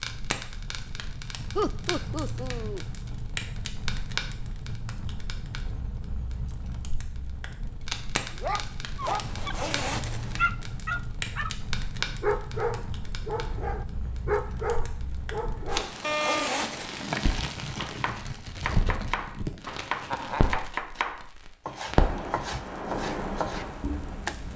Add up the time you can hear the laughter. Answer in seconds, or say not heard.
2 s.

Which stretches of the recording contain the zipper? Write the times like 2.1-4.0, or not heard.
9.0-10.4, 15.7-17.1.